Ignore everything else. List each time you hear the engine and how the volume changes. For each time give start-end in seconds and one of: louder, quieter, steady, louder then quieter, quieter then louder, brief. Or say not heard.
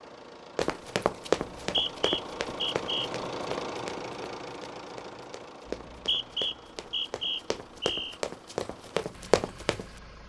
0.0-10.2 louder then quieter.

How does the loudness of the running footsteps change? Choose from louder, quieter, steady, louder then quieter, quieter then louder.
quieter then louder.